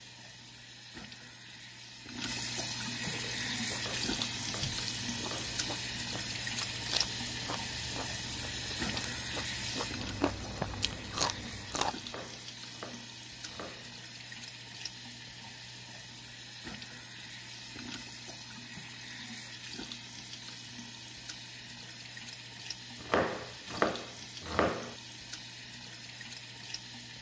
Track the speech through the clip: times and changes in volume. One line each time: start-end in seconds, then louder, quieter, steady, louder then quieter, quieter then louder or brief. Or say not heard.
not heard.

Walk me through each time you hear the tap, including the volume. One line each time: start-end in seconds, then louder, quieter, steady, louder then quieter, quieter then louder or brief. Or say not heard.
0.0-27.1 quieter.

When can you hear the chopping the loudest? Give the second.
24 s.